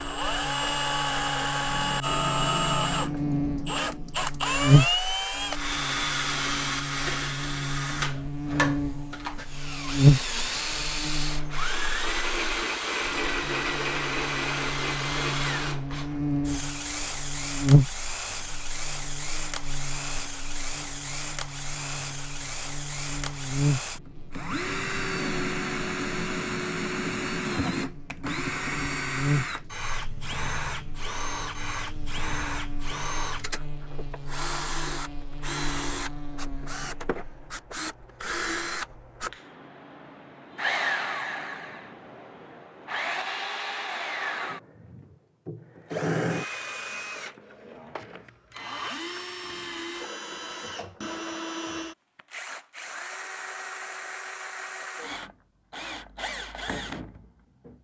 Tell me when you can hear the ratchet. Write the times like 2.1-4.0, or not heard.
not heard.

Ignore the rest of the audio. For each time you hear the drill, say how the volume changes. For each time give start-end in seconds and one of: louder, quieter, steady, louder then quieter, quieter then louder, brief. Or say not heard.
0.0-57.7 quieter.